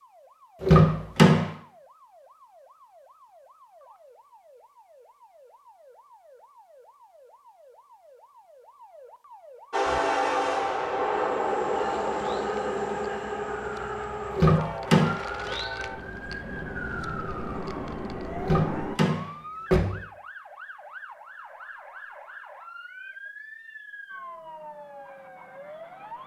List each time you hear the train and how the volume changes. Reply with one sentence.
You can hear the train from 9.7 to 19.0 s, getting quieter.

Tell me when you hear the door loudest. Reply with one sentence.
The loudest moment of the door is at 1 second.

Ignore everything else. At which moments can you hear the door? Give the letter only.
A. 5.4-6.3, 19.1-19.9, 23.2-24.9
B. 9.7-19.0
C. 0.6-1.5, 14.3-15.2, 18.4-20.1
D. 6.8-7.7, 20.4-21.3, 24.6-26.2
C.